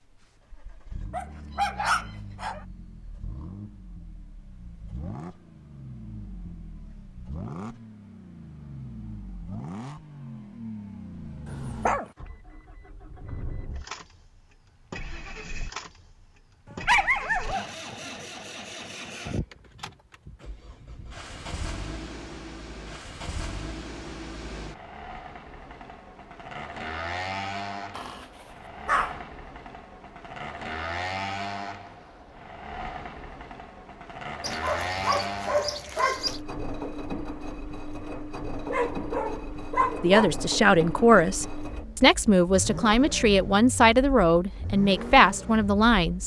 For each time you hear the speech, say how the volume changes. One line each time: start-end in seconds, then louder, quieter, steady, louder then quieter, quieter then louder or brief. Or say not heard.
40.0-46.2 steady.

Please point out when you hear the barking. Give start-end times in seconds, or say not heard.
1.1-2.6, 11.4-12.1, 16.6-18.1, 27.9-29.2, 34.4-36.4, 38.7-40.4.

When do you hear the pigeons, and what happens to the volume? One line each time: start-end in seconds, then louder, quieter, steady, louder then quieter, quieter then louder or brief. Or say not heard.
not heard.